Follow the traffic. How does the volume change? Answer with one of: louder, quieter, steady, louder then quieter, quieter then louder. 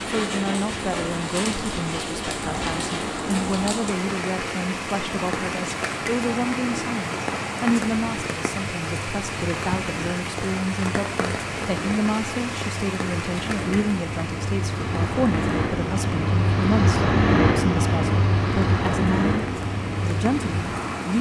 louder.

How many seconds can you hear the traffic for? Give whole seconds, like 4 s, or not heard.
21 s.